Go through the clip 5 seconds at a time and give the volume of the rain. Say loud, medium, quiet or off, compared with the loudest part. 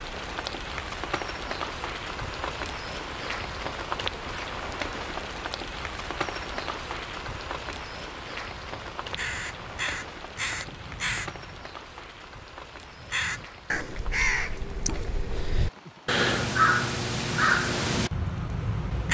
loud, loud, medium, quiet.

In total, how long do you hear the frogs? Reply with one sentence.
The frogs can't be heard in this clip.